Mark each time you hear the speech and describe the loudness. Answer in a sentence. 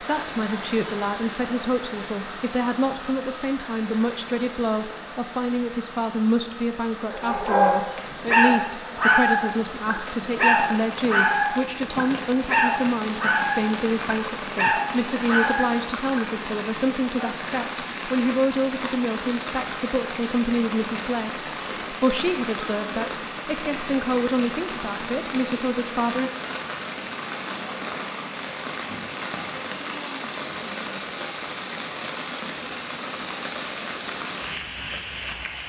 The speech can be heard from 0.0 to 26.3 s, at a steady volume.